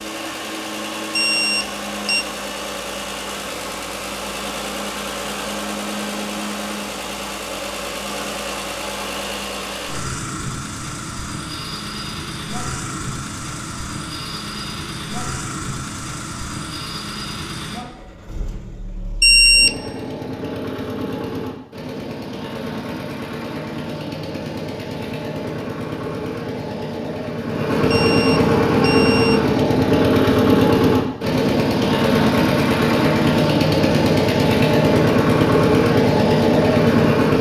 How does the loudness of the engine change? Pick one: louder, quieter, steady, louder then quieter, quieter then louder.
louder.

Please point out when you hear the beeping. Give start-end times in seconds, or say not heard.
1.1-2.2, 19.2-19.8, 27.9-29.4.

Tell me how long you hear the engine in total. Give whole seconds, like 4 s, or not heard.
37 s.